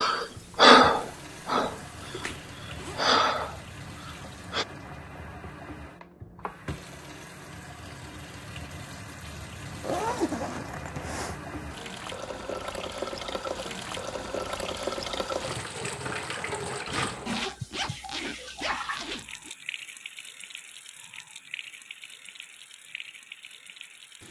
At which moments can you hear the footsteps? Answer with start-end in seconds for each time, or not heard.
not heard.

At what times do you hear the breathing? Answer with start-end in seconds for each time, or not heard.
0.0-1.8, 2.5-4.7.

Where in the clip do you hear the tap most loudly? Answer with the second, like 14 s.
15 s.